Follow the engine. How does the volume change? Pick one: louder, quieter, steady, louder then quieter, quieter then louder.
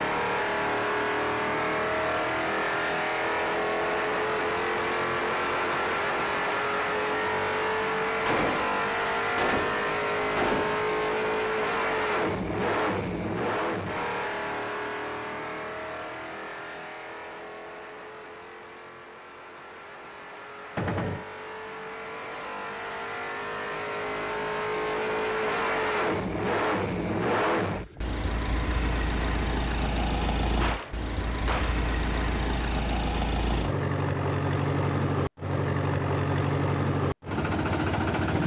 quieter then louder.